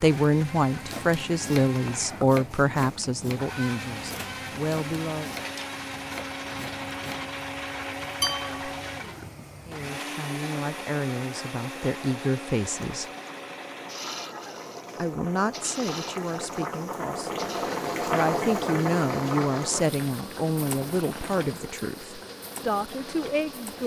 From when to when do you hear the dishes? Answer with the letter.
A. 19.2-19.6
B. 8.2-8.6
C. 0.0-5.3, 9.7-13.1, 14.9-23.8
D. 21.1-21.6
B.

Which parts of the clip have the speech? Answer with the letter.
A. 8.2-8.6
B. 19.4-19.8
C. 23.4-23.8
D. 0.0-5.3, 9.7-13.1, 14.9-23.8
D.